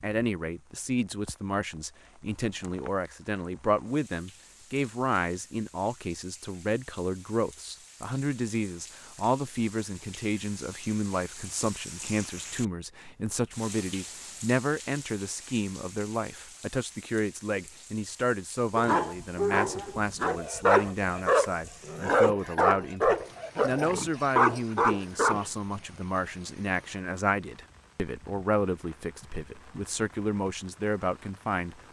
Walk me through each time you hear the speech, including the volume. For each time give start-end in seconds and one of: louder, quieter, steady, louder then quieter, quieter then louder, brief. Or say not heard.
0.0-31.8 steady.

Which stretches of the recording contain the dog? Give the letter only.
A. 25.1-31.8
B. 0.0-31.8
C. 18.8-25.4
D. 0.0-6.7
C.